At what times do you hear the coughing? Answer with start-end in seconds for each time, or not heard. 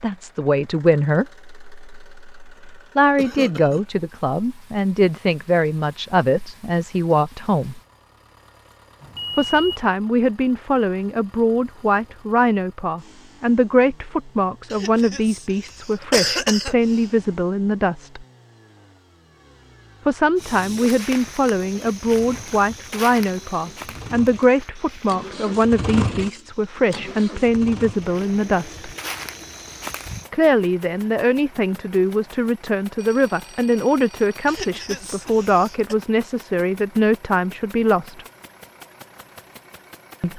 3.1-3.9, 14.7-17.1, 34.5-36.0.